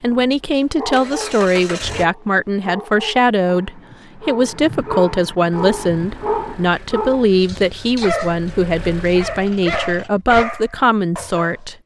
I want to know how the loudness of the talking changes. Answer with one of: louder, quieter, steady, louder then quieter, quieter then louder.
steady.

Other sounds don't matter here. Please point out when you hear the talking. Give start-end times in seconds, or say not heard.
0.0-11.8.